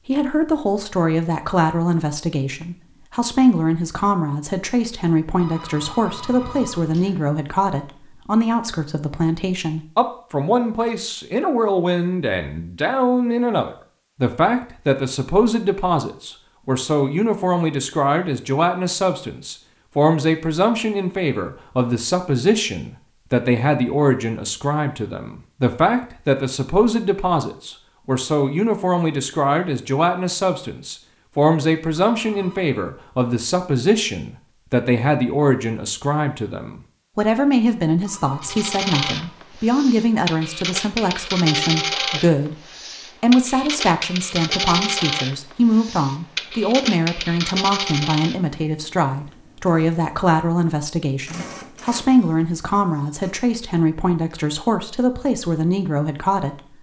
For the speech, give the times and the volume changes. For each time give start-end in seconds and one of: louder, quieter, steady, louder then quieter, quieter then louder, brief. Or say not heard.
0.1-42.5 steady
43.1-56.7 steady.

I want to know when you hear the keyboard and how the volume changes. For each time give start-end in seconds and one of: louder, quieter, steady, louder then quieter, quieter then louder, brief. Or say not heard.
not heard.